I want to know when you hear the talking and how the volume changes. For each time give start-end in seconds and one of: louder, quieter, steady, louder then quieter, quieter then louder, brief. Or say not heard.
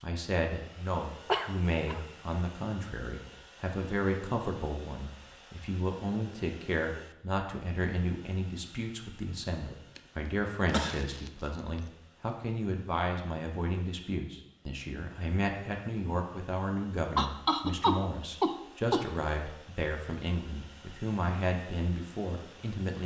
0.0-23.0 steady.